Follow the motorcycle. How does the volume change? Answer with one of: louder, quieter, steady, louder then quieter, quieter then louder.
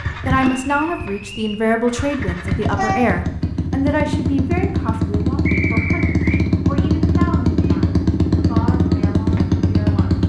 louder.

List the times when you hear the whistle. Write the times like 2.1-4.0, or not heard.
0.5-1.6, 5.5-6.5.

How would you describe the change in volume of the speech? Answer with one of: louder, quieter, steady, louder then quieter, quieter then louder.
quieter.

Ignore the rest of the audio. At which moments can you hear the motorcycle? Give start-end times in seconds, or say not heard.
0.0-10.2.